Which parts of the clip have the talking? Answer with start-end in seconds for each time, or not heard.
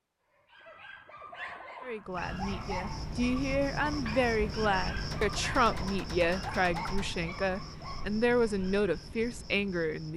1.8-10.1.